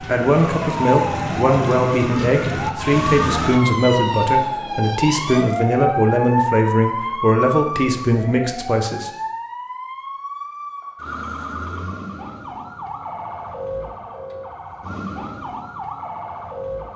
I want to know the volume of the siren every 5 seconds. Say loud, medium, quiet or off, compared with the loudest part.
loud, loud, medium, medium.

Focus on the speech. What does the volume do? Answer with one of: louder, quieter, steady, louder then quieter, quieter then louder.
steady.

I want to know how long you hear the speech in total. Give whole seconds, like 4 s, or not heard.
9 s.